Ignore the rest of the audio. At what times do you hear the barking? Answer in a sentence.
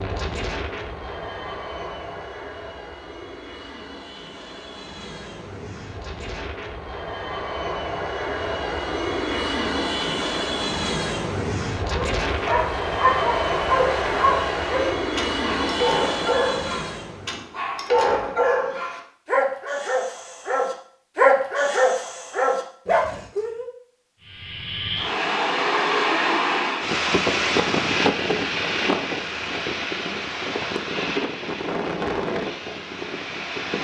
The barking can be heard from 11.8 to 23.7 s.